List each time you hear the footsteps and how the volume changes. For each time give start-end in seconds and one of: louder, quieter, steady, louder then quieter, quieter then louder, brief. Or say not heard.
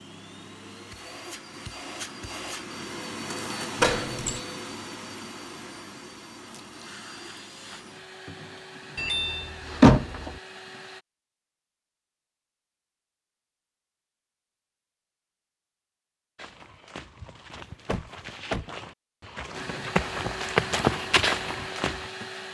16.4-22.1 louder.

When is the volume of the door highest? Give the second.
10 s.